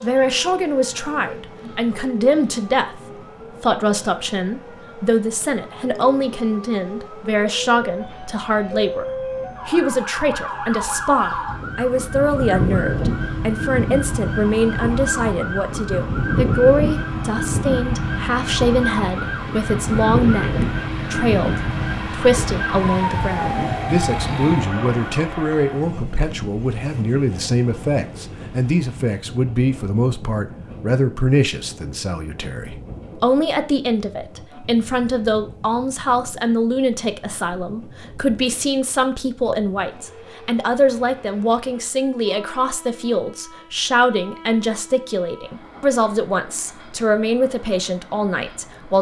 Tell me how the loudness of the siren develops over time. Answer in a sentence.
The loudness of the siren goes up.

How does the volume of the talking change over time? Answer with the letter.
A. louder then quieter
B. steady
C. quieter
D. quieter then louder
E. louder
B.